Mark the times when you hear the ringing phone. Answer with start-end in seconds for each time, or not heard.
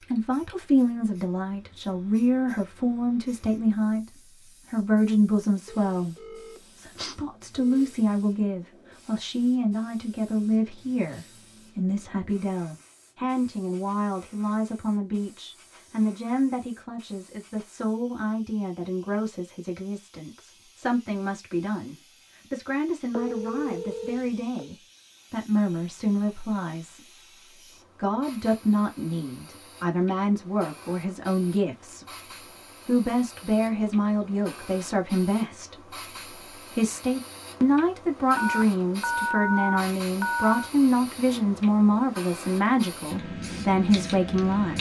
5.7-8.0, 23.1-24.7, 38.4-40.7.